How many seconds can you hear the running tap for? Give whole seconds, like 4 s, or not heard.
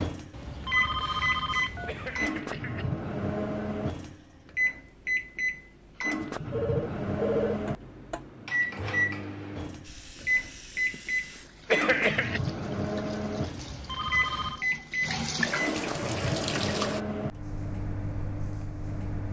7 s.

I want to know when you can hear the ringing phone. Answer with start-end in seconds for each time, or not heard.
0.3-2.3, 6.5-8.2, 13.6-14.7.